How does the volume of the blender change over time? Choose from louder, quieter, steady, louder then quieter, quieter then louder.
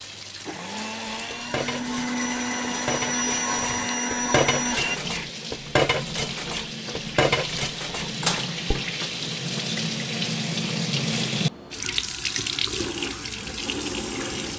louder.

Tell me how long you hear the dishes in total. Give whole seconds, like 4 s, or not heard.
8 s.